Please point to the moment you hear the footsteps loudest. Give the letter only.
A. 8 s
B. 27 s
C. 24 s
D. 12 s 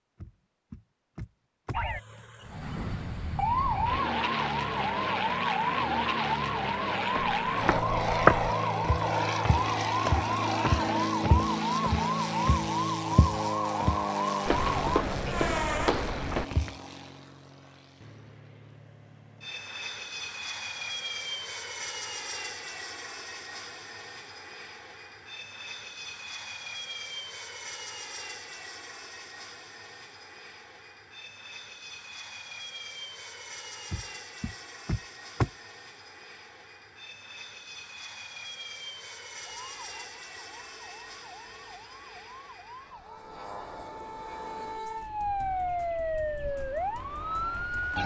A.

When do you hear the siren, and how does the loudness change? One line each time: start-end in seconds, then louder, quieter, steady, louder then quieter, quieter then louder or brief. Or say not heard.
1.7-15.9 steady
39.5-48.0 louder.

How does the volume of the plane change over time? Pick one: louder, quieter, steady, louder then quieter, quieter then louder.
quieter.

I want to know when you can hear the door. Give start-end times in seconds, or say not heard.
0.2-2.2, 33.9-35.5.